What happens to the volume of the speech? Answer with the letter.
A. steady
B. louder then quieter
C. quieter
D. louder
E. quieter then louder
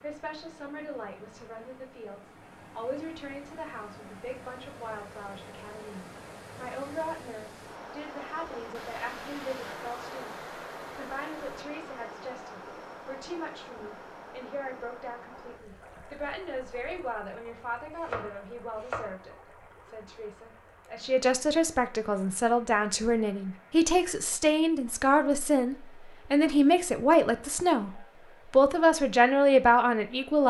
D.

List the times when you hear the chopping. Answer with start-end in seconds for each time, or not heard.
17.9-19.1.